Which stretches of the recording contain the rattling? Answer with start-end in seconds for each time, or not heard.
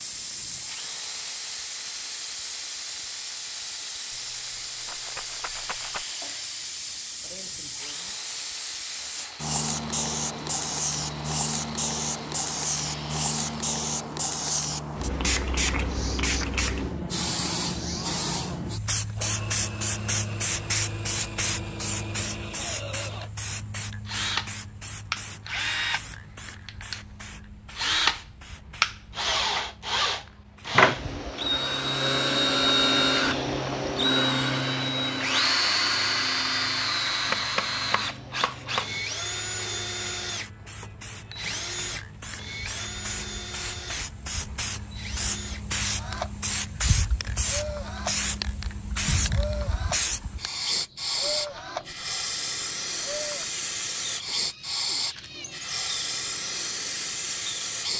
4.1-6.0.